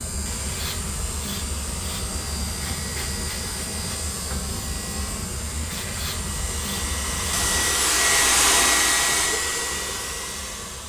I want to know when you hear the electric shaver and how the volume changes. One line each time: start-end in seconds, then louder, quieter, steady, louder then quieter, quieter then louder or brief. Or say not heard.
0.0-10.8 quieter.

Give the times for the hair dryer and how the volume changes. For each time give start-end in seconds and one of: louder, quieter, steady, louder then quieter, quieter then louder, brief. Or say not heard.
0.1-10.8 louder.